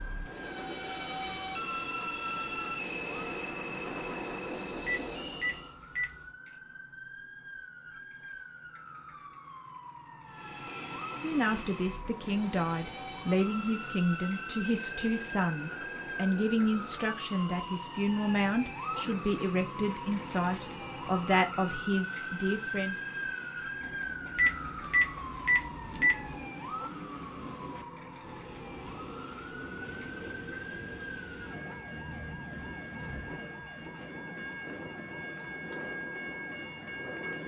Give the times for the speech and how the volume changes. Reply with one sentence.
The speech can be heard from 11.2 to 22.9 s, at a steady volume.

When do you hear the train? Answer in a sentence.
The train can be heard from 0.0 to 5.8 s and from 10.2 to 37.4 s.